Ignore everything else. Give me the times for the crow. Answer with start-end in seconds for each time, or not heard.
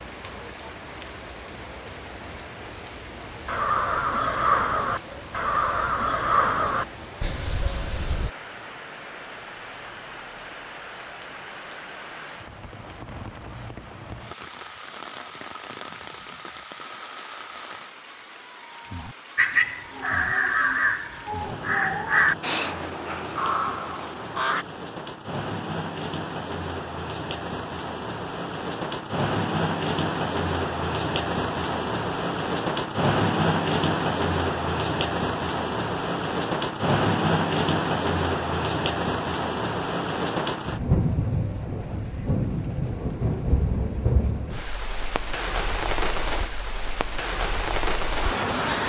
3.5-8.3, 19.4-24.6.